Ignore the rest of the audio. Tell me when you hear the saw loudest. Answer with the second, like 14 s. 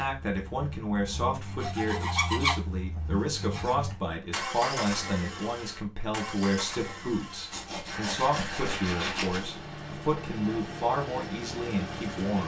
2 s.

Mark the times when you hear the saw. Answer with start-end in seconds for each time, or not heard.
1.4-3.8, 7.5-9.5.